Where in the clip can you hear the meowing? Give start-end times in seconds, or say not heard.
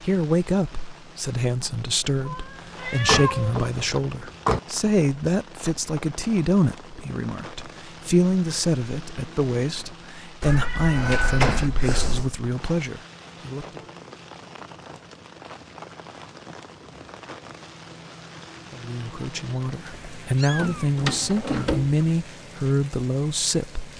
2.2-3.5, 10.4-12.3, 20.4-21.8.